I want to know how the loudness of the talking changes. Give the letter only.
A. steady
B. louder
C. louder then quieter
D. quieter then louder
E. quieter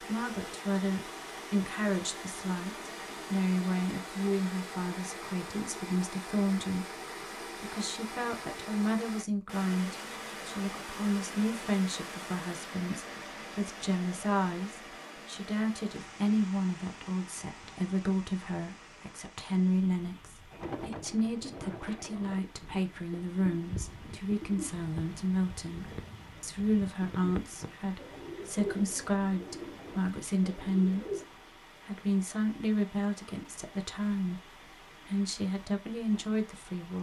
A.